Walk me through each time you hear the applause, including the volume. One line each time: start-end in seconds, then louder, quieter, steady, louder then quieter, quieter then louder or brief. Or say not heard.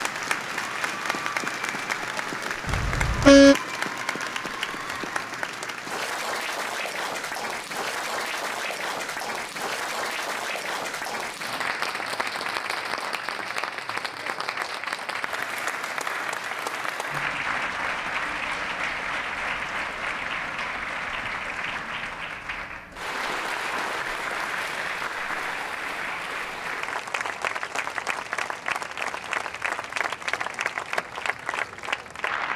0.0-32.5 steady.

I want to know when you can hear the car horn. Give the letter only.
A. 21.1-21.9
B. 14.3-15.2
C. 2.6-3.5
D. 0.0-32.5
C.